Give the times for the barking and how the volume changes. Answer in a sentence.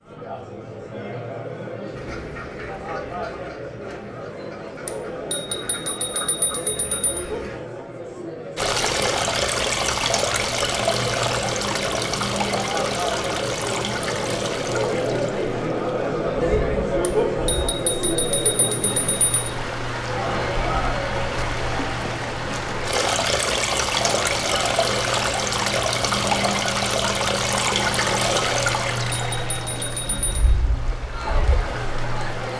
You can't hear the barking here.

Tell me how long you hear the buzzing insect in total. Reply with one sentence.
The buzzing insect can't be heard in this clip.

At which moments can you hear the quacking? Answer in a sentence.
The quacking can be heard from 1.9 to 7.6 s.